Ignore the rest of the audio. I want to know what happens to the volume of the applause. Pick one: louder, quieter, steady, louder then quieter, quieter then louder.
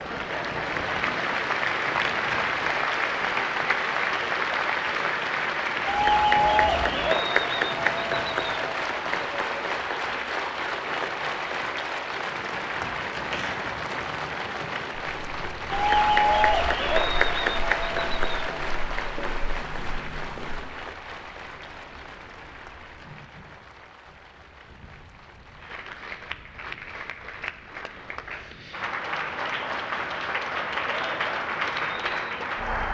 quieter then louder.